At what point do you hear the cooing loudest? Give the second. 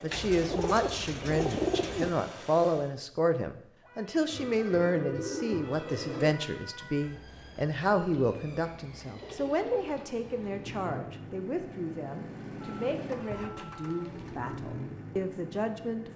2 s.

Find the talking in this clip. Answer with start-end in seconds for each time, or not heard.
0.0-16.1.